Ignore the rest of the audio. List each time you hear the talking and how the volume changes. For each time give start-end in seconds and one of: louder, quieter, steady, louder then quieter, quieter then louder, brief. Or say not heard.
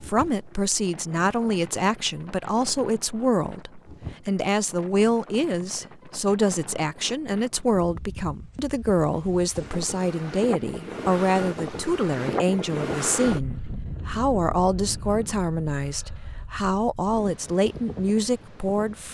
0.0-19.0 steady.